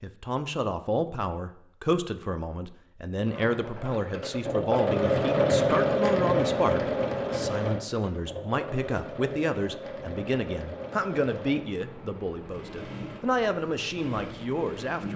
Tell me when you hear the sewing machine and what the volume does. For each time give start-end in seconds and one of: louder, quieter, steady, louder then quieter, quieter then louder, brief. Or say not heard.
3.2-15.1 quieter.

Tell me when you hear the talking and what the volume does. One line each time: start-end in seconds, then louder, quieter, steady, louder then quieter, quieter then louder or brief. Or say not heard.
0.0-15.1 steady.